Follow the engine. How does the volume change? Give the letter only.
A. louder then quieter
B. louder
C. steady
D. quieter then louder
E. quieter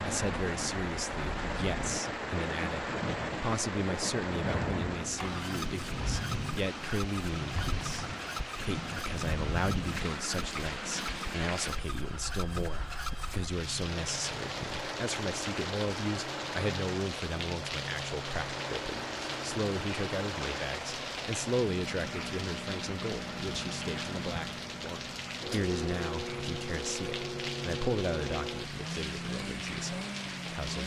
C.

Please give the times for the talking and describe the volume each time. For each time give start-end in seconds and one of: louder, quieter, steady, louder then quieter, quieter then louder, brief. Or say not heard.
0.0-30.8 steady.